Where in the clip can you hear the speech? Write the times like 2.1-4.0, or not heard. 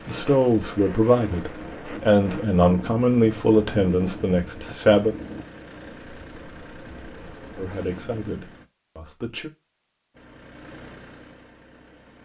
0.1-5.2, 7.5-9.5.